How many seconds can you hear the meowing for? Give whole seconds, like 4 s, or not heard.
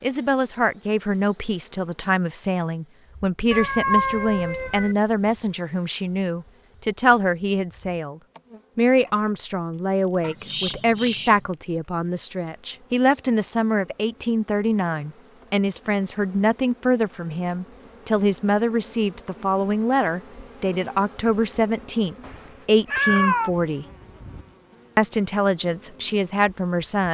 4 s.